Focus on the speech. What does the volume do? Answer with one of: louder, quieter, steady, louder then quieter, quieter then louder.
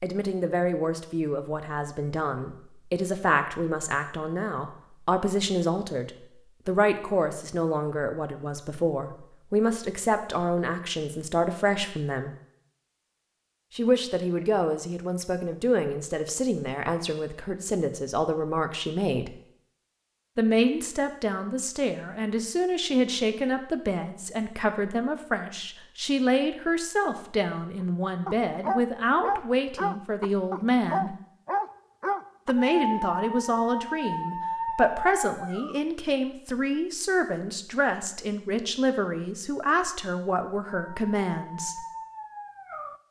steady.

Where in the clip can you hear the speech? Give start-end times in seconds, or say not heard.
0.0-12.3, 13.8-19.3, 20.4-31.1, 32.5-41.8.